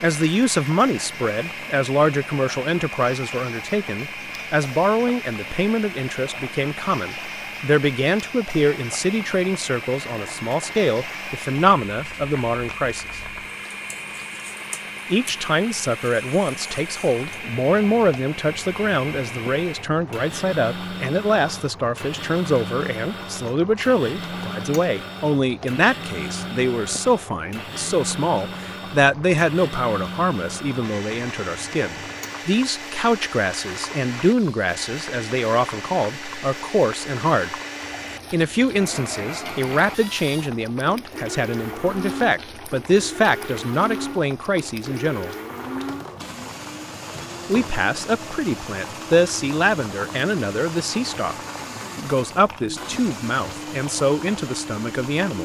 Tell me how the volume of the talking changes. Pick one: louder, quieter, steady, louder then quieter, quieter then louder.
steady.